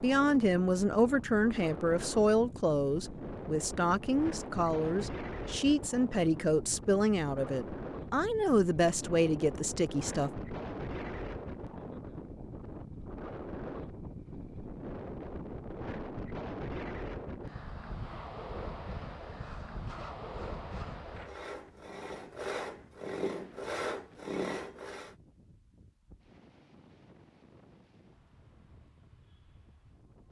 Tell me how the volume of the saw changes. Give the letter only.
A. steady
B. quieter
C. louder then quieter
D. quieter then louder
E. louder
E.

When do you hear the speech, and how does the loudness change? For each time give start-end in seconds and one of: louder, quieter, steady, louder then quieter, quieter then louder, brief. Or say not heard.
0.0-10.3 steady.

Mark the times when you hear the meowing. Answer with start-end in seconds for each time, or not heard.
not heard.